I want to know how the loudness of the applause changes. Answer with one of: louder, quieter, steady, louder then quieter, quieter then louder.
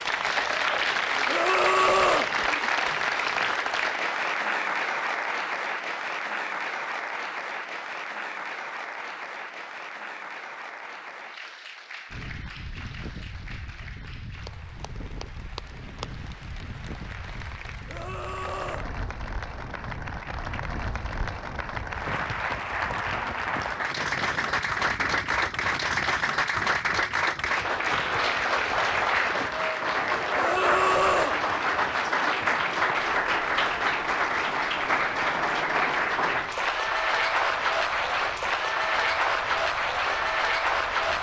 quieter then louder.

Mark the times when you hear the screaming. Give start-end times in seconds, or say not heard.
1.2-2.3, 17.9-18.9, 30.4-31.4.